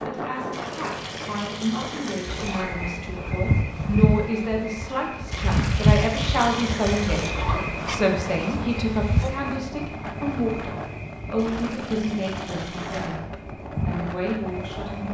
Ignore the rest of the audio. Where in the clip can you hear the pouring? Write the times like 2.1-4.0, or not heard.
0.5-2.5, 5.3-7.3, 11.3-13.1.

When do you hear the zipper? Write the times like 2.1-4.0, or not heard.
2.3-2.7, 7.2-7.9, 12.8-13.2.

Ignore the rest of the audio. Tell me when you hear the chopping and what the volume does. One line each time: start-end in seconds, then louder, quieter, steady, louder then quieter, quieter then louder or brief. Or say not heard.
not heard.